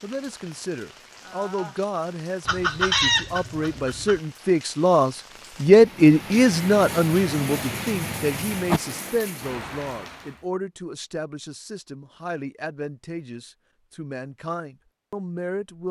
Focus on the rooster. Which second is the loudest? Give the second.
3 s.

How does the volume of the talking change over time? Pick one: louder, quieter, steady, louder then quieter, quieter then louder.
louder then quieter.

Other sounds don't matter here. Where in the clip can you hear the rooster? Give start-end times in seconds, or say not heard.
2.5-4.2.